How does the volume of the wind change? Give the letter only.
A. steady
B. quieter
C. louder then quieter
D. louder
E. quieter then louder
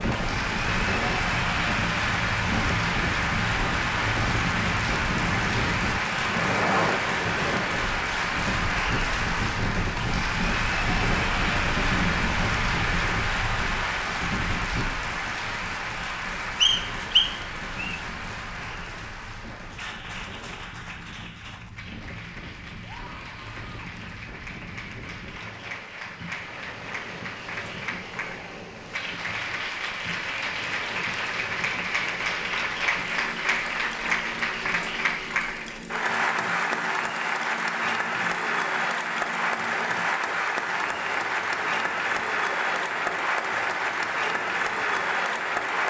B.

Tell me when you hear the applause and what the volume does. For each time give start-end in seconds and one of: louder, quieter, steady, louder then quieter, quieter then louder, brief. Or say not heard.
0.0-45.8 quieter then louder.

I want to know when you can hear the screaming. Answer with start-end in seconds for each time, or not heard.
22.8-23.9.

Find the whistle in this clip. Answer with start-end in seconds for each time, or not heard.
16.6-18.0.